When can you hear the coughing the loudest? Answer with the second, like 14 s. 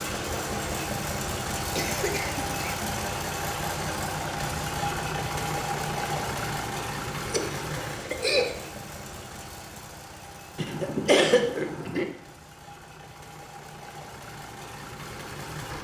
11 s.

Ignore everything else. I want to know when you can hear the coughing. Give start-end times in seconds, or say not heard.
1.8-3.0, 7.2-8.6, 10.6-12.1.